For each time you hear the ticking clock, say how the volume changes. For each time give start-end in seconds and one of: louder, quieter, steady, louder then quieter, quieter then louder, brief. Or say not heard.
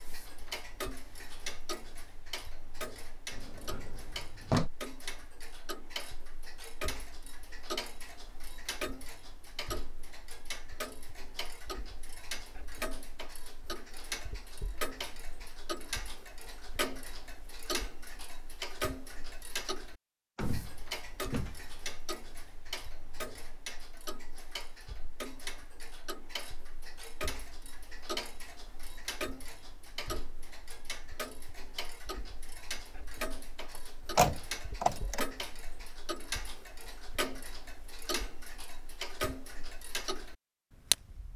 0.0-41.3 steady.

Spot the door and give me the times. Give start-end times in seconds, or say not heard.
3.3-4.7, 20.4-21.8, 34.1-35.2.